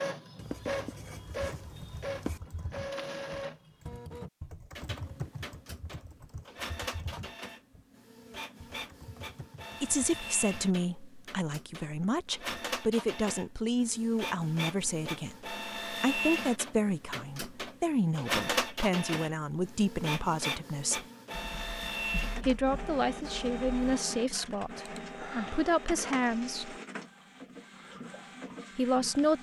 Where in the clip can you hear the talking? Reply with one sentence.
You can hear the talking from 9.8 to 21.1 s, from 22.4 to 26.8 s and from 28.8 to 29.3 s.